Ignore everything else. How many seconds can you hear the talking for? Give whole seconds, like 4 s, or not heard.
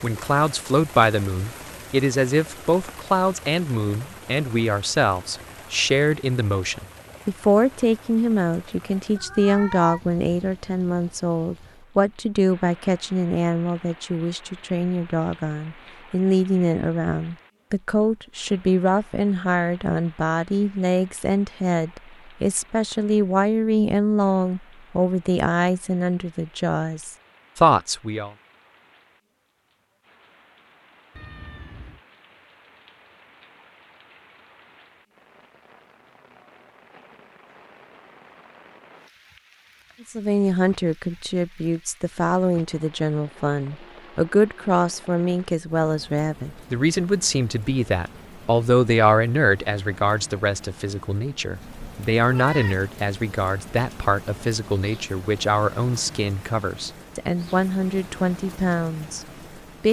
48 s.